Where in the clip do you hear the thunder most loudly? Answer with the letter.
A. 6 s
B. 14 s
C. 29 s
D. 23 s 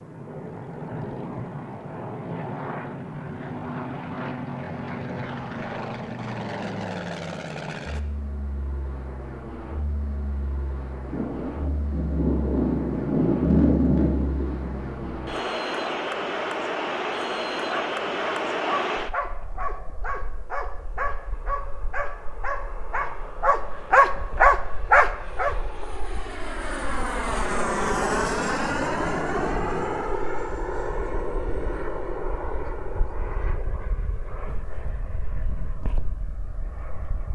B.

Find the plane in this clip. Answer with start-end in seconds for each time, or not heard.
0.0-37.3.